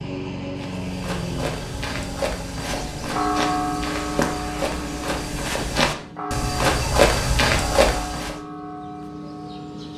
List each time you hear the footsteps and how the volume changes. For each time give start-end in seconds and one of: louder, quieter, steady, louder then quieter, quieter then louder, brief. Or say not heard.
0.6-8.3 louder.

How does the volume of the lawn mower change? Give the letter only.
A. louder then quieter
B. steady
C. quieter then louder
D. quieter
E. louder
D.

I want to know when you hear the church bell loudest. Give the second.
3 s.